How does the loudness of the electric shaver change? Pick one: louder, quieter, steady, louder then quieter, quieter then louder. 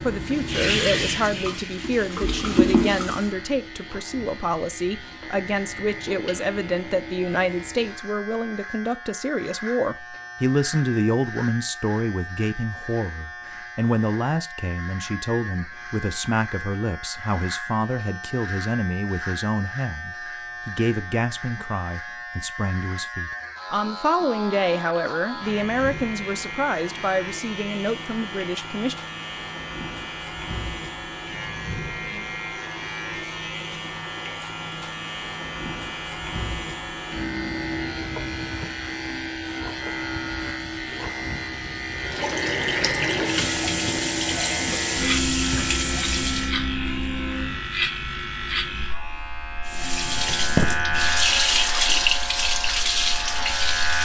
louder.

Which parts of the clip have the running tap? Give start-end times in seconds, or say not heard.
0.0-3.4, 42.0-46.5, 49.6-54.0.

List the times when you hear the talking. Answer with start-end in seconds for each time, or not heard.
0.0-28.9.